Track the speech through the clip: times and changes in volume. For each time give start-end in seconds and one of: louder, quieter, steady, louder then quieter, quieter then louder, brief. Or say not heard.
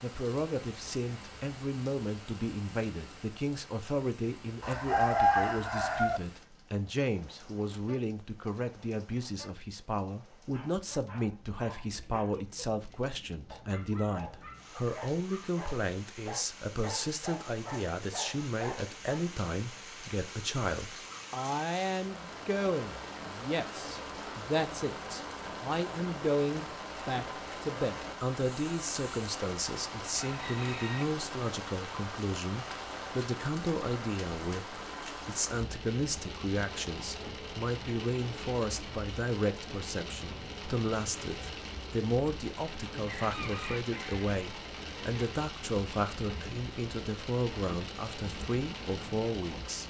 0.0-49.8 steady.